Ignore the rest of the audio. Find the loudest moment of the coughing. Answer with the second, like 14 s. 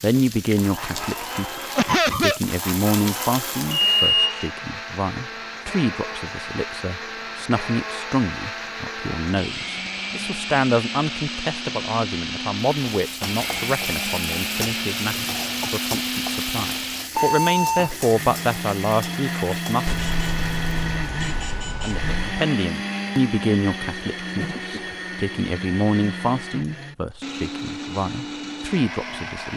2 s.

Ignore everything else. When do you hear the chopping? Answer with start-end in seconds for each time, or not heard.
not heard.